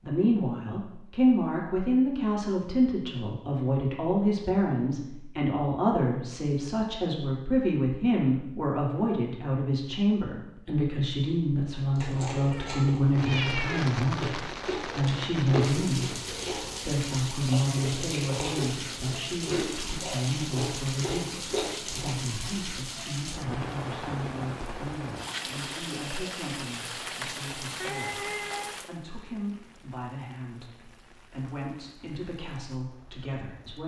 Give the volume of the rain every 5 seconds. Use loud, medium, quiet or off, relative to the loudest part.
off, off, loud, loud, loud, loud, quiet.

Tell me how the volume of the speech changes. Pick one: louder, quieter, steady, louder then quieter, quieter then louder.
quieter.